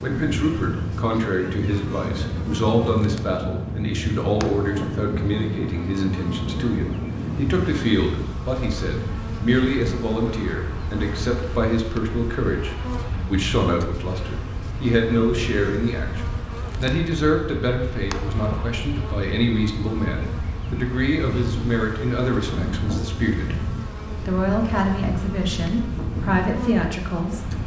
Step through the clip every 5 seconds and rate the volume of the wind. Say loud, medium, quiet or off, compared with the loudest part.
loud, loud, medium, medium, loud, loud.